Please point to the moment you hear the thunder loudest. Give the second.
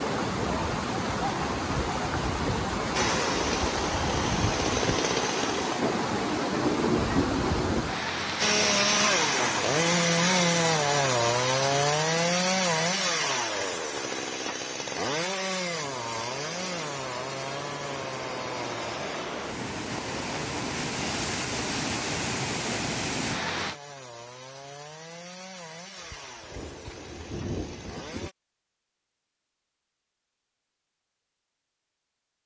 7 s.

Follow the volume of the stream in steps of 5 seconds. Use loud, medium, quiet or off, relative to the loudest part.
loud, loud, medium, medium, loud, off, off.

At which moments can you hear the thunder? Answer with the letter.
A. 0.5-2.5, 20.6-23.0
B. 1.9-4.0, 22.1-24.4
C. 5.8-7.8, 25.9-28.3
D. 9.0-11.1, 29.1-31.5
C.